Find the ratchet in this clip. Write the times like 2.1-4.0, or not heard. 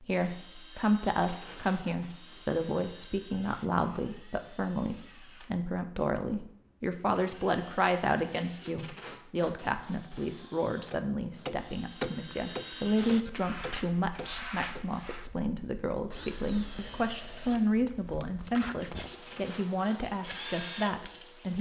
not heard.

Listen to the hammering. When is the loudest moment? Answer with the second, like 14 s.
12 s.